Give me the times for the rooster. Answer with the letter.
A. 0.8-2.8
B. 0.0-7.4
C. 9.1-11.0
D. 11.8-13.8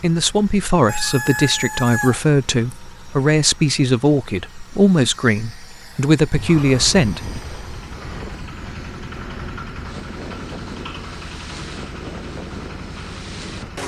A.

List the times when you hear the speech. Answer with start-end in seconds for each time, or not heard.
0.0-7.4.